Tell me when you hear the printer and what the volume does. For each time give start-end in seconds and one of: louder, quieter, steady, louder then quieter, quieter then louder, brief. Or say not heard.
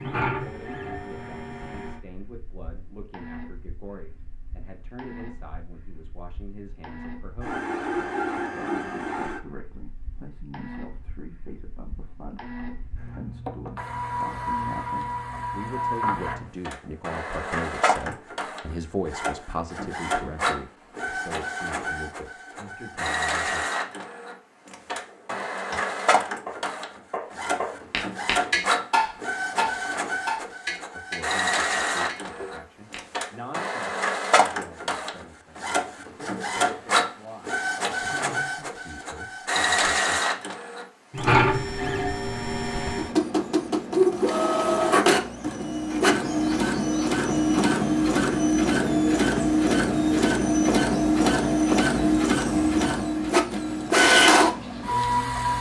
0.0-55.5 louder.